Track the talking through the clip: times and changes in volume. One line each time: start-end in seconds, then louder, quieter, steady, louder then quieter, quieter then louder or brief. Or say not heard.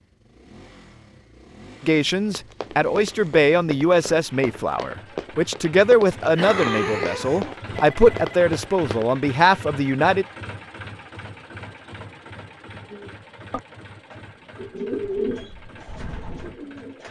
1.8-10.2 steady.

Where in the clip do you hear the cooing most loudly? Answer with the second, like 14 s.
15 s.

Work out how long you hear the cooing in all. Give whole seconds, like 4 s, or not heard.
4 s.